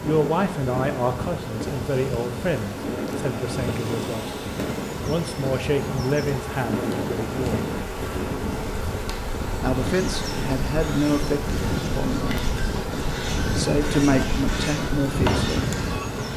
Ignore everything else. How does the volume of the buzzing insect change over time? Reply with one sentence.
The volume of the buzzing insect stays about the same.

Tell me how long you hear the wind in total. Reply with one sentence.
You can hear the wind for 16 seconds altogether.